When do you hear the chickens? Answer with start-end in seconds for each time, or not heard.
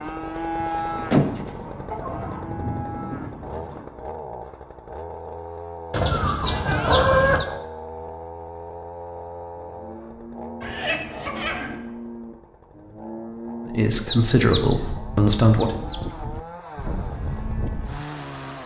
0.6-2.4, 5.9-7.5, 10.6-11.8, 13.9-15.9.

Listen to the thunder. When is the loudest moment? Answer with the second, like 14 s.
3 s.